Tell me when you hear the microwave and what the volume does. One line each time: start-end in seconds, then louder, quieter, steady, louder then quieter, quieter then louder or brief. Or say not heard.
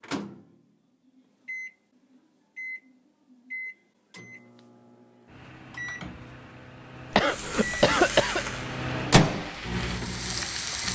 0.0-10.8 louder.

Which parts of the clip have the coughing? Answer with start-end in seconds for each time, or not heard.
7.1-8.4.